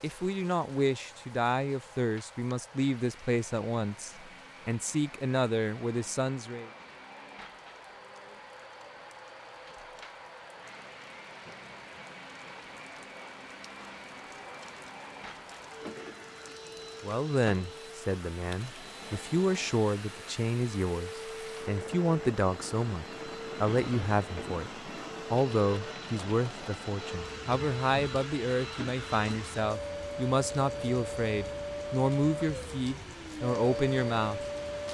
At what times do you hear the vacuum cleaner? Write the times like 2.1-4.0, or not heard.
0.0-34.8.